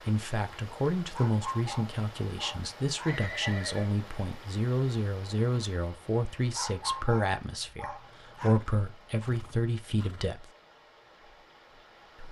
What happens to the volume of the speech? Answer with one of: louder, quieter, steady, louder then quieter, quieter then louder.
steady.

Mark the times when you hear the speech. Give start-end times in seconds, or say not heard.
0.1-10.5.